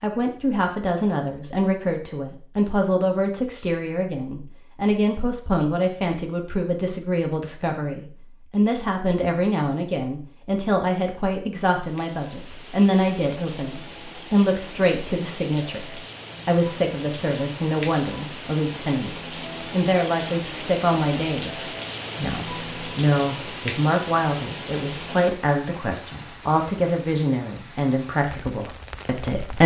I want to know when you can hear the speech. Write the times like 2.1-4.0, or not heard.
0.0-29.6.